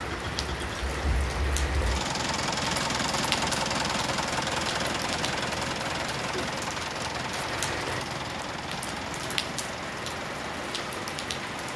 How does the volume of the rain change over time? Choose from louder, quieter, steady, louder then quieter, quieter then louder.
steady.